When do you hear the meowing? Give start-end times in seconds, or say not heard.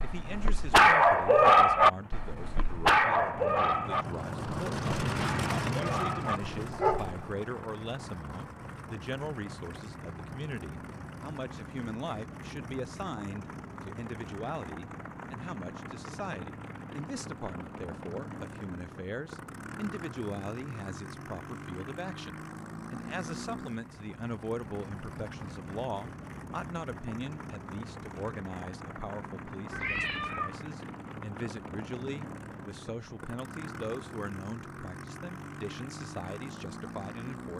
29.7-30.6.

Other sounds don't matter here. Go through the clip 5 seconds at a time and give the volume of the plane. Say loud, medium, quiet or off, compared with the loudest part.
loud, loud, medium, medium, medium, medium, medium, medium.